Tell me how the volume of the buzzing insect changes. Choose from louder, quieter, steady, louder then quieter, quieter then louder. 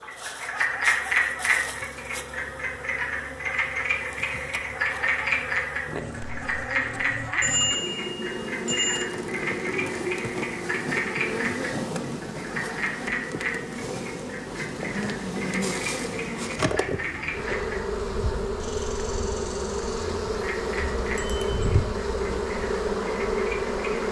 louder.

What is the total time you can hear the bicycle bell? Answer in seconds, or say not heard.
2 s.